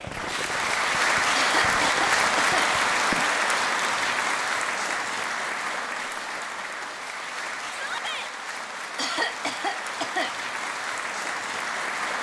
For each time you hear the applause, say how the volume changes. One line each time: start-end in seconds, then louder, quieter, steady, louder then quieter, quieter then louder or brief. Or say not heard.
0.0-12.1 quieter.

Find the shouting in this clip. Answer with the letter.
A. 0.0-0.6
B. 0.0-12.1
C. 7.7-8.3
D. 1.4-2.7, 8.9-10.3
C.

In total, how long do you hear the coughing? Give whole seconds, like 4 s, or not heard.
3 s.